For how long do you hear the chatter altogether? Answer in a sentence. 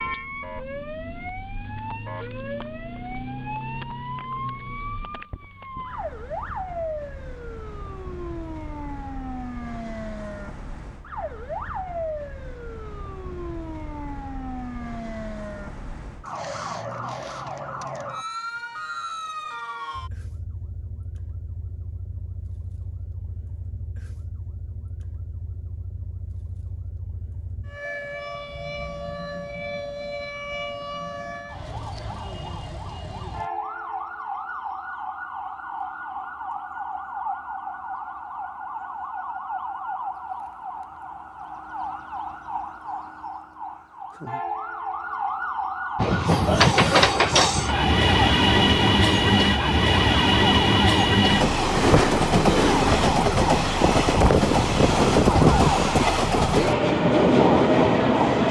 You can't hear the chatter here.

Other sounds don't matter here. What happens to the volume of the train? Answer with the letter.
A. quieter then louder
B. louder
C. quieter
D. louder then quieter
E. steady
E.